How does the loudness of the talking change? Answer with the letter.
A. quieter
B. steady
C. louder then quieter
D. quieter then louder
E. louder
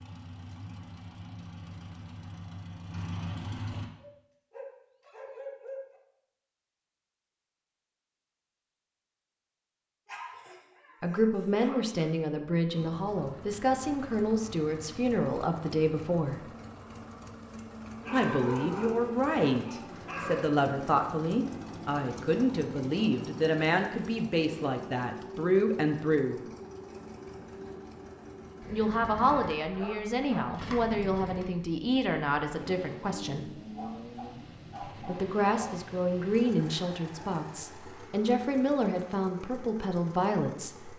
B.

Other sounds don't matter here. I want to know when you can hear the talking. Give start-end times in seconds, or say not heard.
11.0-16.4, 18.1-26.4, 28.6-33.5, 34.9-40.9.